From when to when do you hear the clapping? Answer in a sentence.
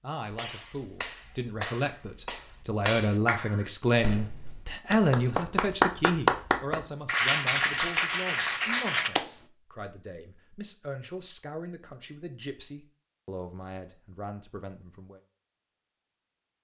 You can hear the clapping from 0.3 to 9.2 s.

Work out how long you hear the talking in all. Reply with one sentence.
You can hear the talking for 15 seconds altogether.